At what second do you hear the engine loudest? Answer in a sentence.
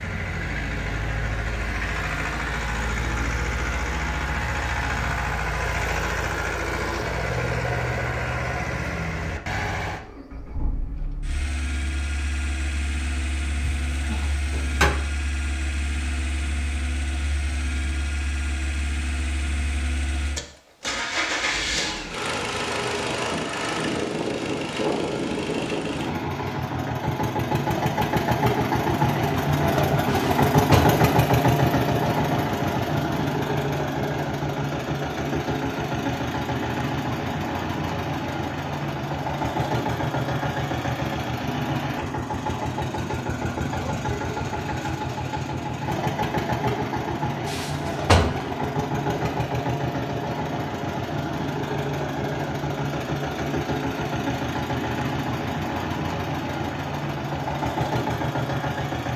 The volume of the engine peaks at 31 seconds.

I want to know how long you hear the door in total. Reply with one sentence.
You can hear the door for 3 seconds altogether.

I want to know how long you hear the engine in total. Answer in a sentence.
You can hear the engine for 59 seconds altogether.